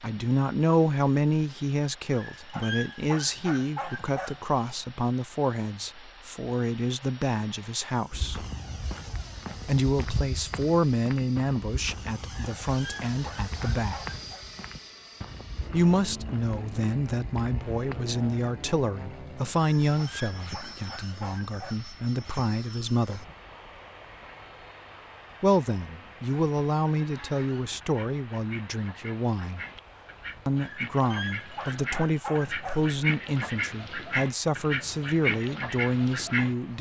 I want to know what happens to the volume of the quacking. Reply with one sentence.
The loudness of the quacking goes up.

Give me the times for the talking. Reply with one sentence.
The talking can be heard from 0.0 to 8.4 s, from 9.7 to 14.0 s, from 15.7 to 23.2 s, from 25.4 to 29.6 s and from 30.4 to 36.7 s.